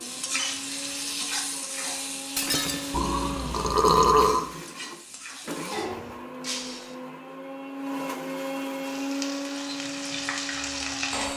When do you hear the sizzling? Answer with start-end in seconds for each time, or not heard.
0.0-6.2, 8.8-11.3.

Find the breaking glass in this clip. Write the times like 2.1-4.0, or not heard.
2.4-3.0, 6.4-7.0.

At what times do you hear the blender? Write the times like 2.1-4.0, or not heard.
0.0-11.3.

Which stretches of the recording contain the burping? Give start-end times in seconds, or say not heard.
2.9-4.5.